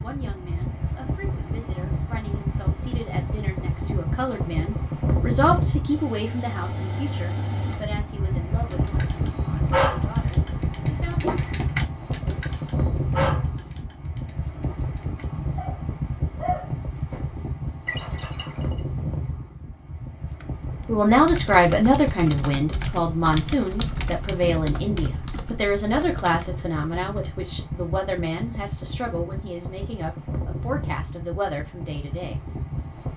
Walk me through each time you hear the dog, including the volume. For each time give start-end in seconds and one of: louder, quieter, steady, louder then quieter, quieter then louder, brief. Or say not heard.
8.7-17.2 quieter then louder
17.9-18.6 brief.